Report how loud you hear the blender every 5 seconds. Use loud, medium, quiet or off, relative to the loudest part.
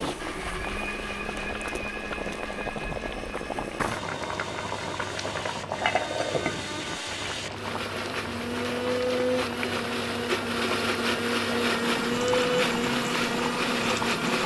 medium, medium, loud.